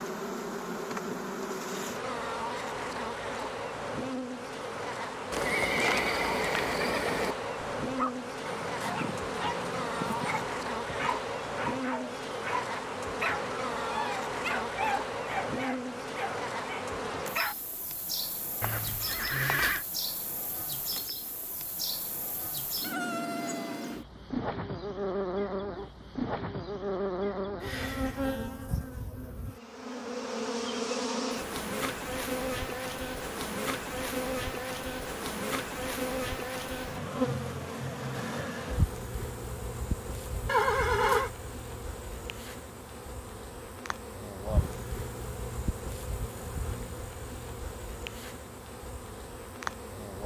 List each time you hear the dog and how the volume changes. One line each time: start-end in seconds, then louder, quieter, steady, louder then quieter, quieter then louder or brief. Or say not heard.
7.8-17.6 steady.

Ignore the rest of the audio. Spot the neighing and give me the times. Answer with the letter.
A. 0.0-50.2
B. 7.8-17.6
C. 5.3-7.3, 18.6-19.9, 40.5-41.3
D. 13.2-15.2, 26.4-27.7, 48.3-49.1
C.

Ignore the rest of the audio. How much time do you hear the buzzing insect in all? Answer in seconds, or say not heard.
50 s.